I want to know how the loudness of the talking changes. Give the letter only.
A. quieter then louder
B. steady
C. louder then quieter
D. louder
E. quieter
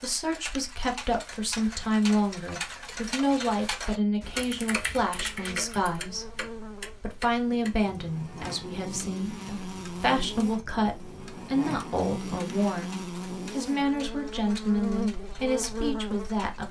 B.